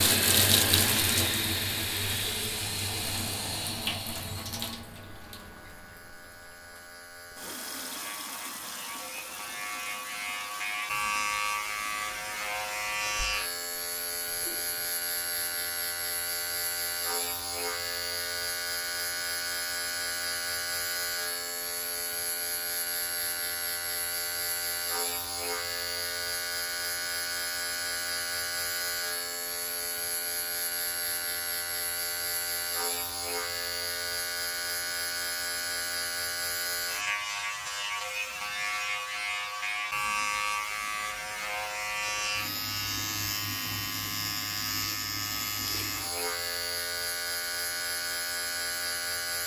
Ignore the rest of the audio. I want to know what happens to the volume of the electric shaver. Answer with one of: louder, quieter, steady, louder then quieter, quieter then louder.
steady.